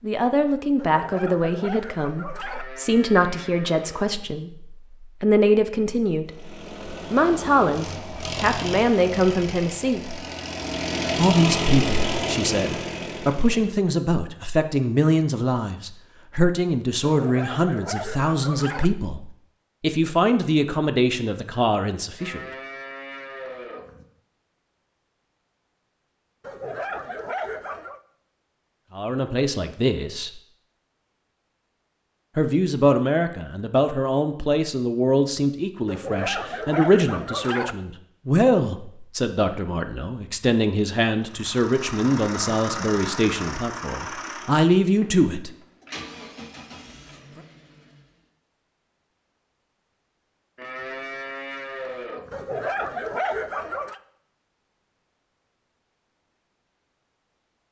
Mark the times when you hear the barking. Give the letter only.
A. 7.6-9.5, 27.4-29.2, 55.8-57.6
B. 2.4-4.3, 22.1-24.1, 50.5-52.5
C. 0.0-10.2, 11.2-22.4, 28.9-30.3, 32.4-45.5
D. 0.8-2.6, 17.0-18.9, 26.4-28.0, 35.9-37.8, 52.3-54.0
D.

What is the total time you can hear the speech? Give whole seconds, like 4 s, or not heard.
36 s.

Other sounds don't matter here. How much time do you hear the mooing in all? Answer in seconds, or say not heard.
6 s.